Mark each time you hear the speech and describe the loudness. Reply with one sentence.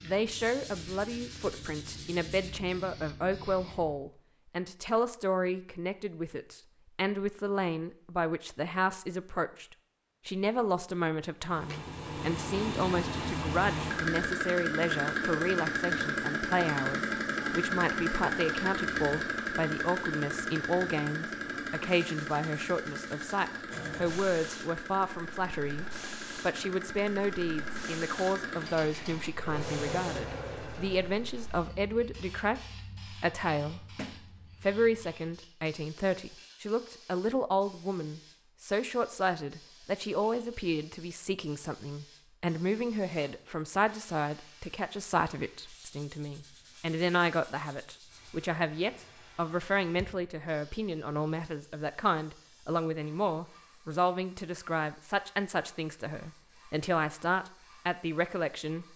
The speech can be heard from 0.0 to 33.9 s, at a steady volume; and from 34.6 to 58.9 s, at a steady volume.